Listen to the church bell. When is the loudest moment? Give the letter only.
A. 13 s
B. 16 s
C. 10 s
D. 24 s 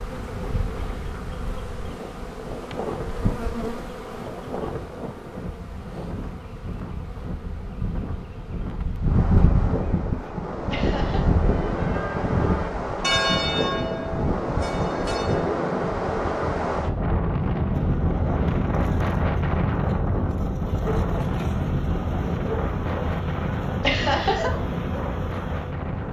A.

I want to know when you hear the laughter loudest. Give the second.
24 s.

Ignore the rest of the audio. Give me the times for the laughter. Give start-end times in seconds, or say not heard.
10.7-11.3, 23.8-24.5.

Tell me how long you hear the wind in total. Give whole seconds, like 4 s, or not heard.
26 s.